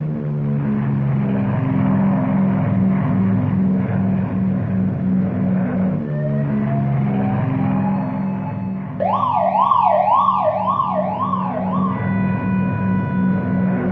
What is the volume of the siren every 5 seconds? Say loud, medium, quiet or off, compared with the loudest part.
off, loud, loud.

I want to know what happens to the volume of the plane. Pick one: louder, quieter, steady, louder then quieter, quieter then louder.
quieter then louder.